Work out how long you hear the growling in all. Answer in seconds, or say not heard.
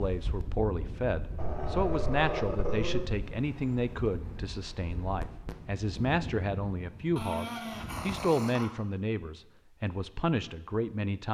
3 s.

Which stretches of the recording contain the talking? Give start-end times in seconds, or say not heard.
0.0-11.2.